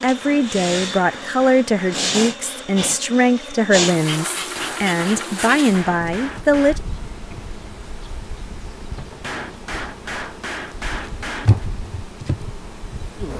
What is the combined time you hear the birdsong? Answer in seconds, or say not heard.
not heard.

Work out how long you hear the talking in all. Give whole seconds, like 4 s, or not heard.
7 s.